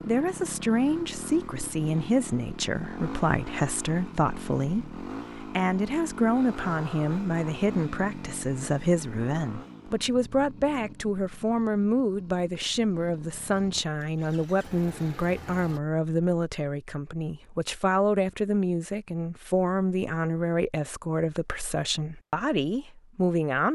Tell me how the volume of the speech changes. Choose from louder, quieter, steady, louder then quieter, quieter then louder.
steady.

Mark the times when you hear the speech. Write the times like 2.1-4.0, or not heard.
0.1-23.7.